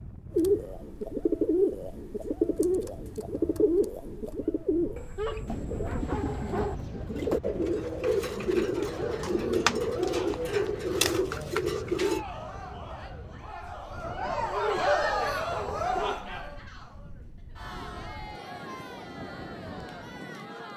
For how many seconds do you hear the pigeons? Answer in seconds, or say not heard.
12 s.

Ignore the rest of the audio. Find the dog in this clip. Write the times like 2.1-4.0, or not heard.
5.0-6.8, 14.5-16.2.